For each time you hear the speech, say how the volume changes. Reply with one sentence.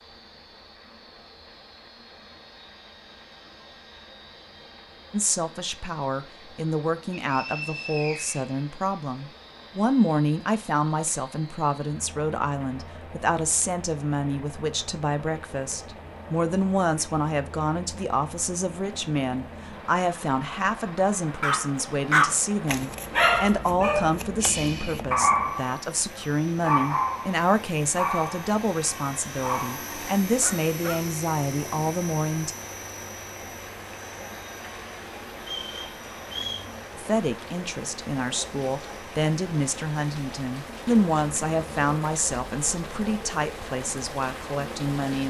You can hear the speech from 5.1 to 32.5 s, at a steady volume; and from 37.0 to 45.2 s, getting louder then quieter.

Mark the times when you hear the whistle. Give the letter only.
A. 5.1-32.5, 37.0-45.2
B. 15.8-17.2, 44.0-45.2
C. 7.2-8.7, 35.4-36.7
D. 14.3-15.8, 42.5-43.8
C.